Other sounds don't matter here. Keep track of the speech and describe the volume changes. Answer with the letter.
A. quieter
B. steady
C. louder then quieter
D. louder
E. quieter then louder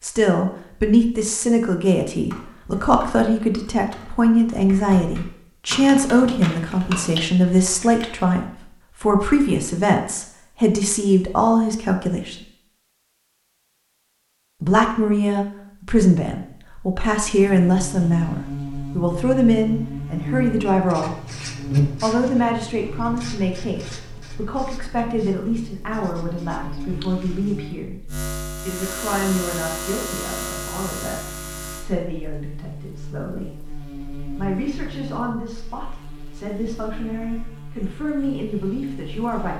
A.